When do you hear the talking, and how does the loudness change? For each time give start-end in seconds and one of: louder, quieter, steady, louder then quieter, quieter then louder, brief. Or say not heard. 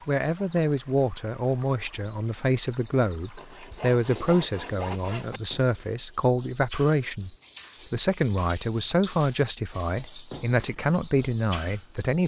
0.1-12.2 steady.